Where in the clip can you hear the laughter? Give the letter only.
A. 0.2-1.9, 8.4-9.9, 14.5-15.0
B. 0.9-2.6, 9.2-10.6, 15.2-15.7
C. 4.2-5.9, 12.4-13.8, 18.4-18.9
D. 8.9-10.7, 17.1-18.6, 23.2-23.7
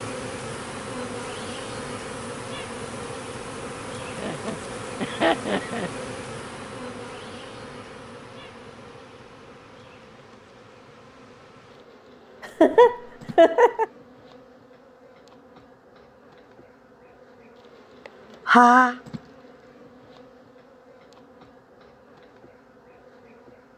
C.